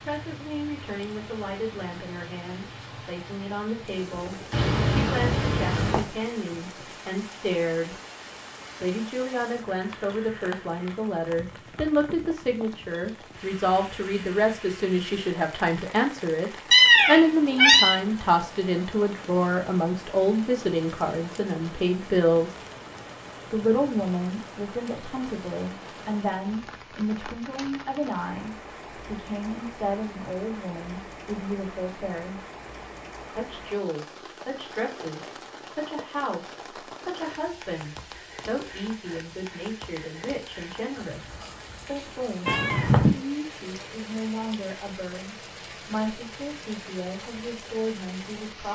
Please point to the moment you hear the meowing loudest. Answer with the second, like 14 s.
17 s.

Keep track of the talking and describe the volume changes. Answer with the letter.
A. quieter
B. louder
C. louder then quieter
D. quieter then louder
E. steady
C.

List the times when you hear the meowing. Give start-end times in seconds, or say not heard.
4.5-6.0, 16.7-17.9, 42.5-43.1.